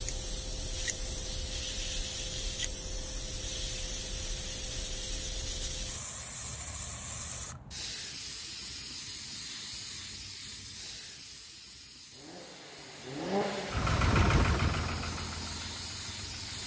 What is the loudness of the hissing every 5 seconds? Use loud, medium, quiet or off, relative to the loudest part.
loud, loud, medium, loud.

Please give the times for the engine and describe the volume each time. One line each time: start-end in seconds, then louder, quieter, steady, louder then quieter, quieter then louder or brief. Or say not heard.
12.1-16.6 louder then quieter.